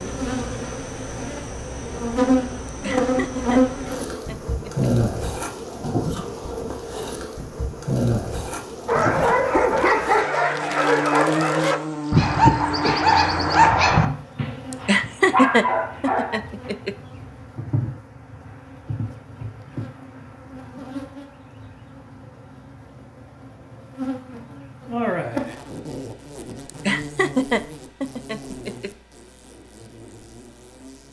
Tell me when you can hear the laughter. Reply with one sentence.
You can hear the laughter from 2.6 to 4.9 s, from 14.7 to 16.9 s and from 26.6 to 28.9 s.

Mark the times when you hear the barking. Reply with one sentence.
The barking can be heard from 8.8 to 16.8 s.